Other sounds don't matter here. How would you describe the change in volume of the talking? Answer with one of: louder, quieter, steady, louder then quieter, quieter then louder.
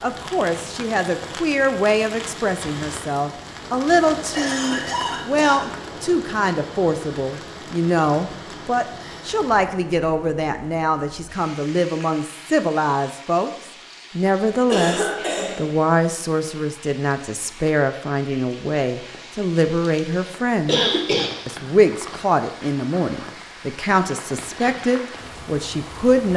steady.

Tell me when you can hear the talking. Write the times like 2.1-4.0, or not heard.
0.0-13.5, 14.2-20.9, 21.4-26.3.